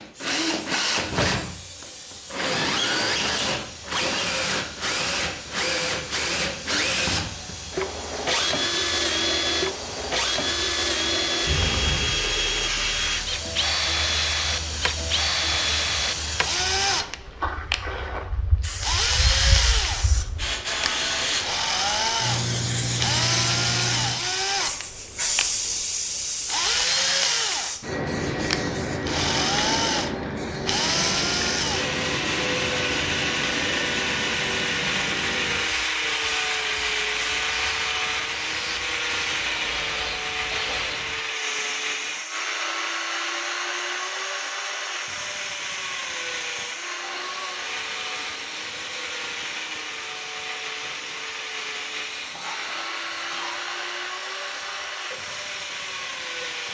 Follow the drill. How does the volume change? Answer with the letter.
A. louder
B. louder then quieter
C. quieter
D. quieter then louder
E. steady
C.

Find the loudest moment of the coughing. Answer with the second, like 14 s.
12 s.